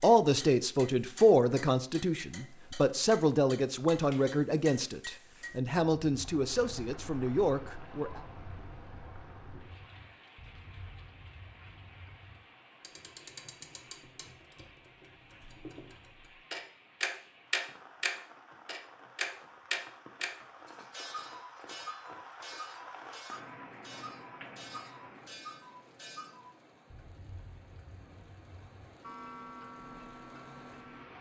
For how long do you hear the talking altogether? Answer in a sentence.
You can hear the talking for 8 seconds altogether.